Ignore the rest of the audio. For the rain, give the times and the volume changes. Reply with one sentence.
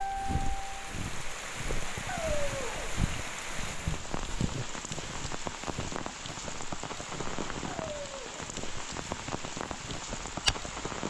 You can hear the rain from 0.0 to 11.0 s, at a steady volume.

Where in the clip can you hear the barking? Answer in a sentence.
The barking can be heard from 2.0 to 3.0 s and from 7.7 to 8.6 s.